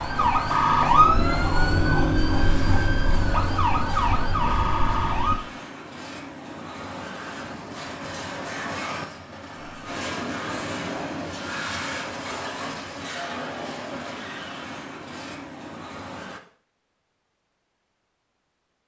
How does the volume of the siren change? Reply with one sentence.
The loudness of the siren goes down.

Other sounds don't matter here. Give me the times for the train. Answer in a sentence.
You can hear the train from 0.0 to 16.4 s.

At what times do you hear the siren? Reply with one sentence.
The siren can be heard from 0.0 to 5.4 s.